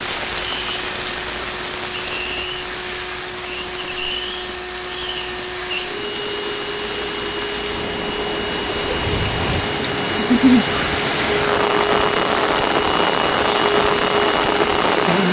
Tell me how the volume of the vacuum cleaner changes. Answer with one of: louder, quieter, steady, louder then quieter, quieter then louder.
louder.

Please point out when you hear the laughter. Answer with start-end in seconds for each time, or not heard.
10.2-10.7.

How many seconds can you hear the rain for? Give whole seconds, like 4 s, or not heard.
15 s.